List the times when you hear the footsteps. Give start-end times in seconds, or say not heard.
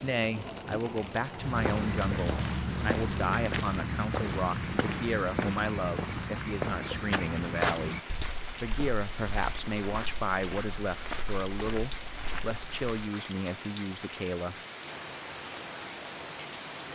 1.3-13.1.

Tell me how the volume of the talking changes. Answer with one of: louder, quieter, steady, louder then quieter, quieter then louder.
steady.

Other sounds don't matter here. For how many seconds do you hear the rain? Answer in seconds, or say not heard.
17 s.